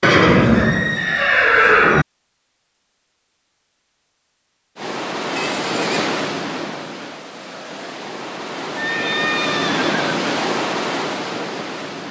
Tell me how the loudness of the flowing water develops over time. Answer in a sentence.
The loudness of the flowing water goes down, then up.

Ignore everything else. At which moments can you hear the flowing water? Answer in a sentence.
The flowing water can be heard from 4.8 to 12.0 s.